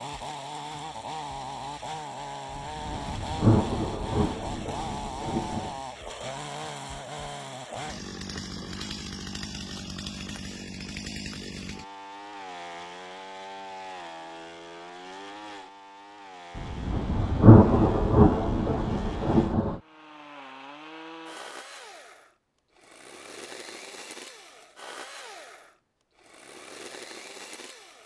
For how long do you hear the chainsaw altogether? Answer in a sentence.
You can hear the chainsaw for 28 seconds altogether.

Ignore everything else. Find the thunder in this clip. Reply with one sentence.
The thunder can be heard from 2.5 to 5.8 s and from 16.6 to 19.8 s.